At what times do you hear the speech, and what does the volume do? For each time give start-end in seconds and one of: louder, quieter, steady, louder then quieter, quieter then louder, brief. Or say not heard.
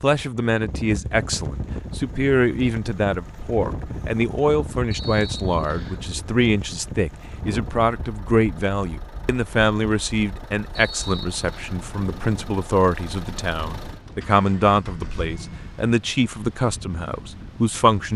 0.0-18.1 steady.